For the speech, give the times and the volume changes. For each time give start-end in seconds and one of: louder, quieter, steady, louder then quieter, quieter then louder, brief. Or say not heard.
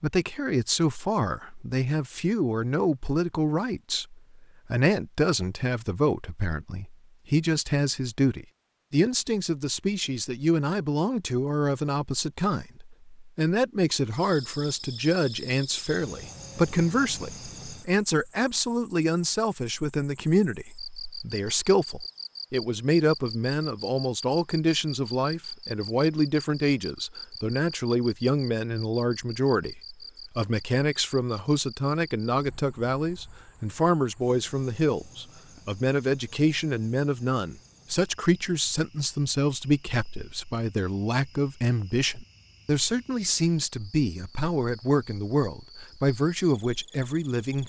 0.0-47.6 steady.